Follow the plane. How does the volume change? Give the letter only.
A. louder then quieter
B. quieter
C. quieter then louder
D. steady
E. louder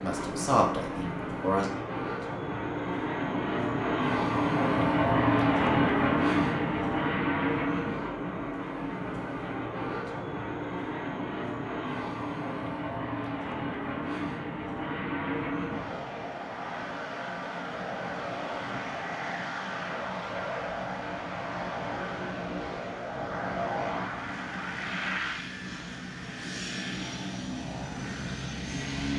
B.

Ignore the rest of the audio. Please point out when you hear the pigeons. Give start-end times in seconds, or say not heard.
not heard.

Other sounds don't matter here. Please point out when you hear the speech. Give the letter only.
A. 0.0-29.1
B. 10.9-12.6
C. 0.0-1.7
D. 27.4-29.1
C.